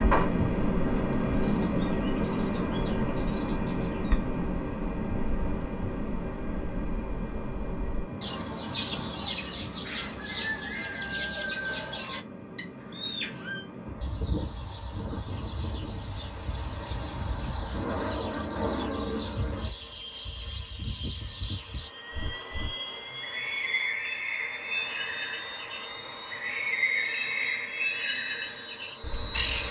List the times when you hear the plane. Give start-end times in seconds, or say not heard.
0.0-29.6.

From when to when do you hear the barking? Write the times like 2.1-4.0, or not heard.
not heard.